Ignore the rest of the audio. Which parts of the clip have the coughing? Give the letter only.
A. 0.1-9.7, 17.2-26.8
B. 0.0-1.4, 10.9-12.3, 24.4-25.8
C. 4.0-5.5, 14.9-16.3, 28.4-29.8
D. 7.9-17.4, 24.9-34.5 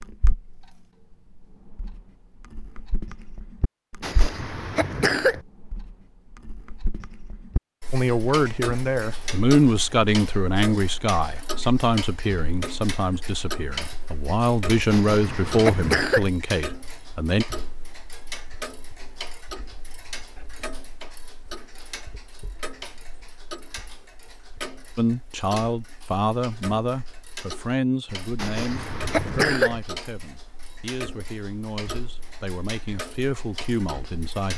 C.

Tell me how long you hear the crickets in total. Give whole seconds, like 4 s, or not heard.
not heard.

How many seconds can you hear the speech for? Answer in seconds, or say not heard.
19 s.